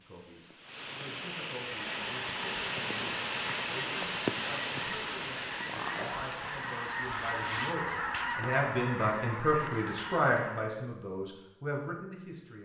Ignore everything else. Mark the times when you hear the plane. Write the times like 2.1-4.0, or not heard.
not heard.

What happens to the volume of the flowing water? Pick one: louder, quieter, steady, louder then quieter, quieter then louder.
louder then quieter.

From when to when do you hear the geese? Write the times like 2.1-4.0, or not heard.
1.9-10.8.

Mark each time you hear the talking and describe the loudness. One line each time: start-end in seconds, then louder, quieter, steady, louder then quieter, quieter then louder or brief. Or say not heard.
0.0-12.6 louder.